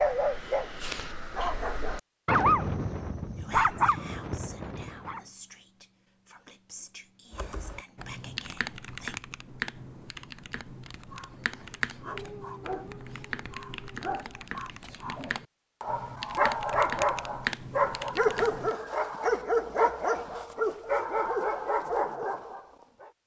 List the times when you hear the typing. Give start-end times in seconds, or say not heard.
7.3-18.8.